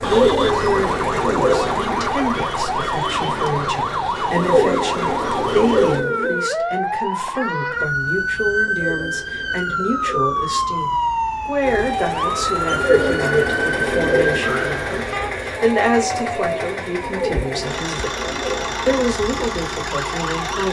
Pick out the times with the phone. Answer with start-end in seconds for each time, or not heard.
not heard.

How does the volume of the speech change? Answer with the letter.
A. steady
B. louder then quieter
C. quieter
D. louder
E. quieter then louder
A.